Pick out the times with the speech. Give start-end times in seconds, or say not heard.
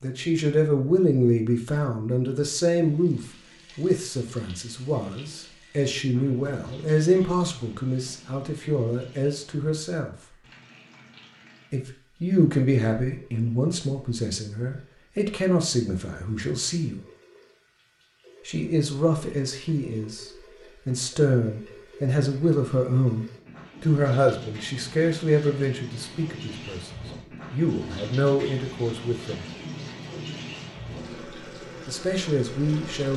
0.0-10.2, 11.7-17.0, 18.4-29.4, 31.9-33.1.